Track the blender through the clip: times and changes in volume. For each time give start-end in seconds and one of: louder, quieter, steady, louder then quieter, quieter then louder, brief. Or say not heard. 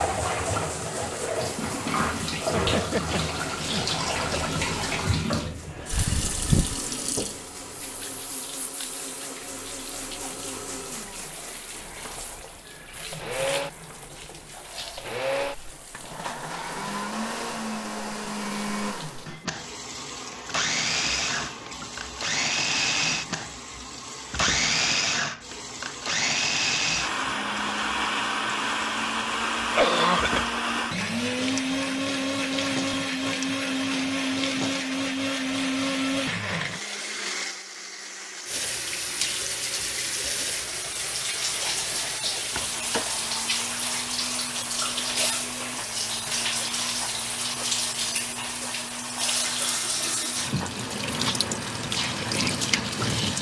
0.0-53.3 louder then quieter.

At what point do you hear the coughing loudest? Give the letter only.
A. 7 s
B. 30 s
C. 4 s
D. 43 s
B.